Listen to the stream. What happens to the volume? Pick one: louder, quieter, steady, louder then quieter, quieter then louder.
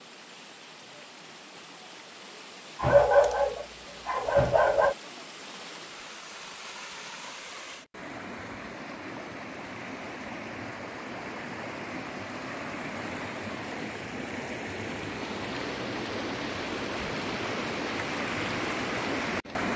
louder.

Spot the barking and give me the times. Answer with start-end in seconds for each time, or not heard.
2.8-5.0.